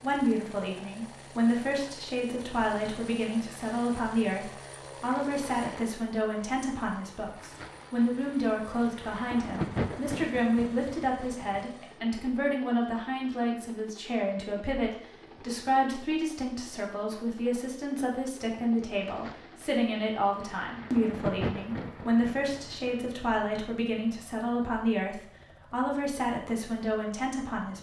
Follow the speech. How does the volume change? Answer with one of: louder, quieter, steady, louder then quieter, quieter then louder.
steady.